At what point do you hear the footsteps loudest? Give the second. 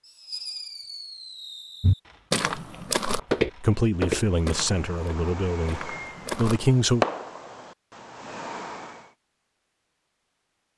3 s.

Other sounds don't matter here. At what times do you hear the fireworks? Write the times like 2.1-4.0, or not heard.
0.0-9.1.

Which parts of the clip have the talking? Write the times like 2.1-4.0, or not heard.
3.5-7.0.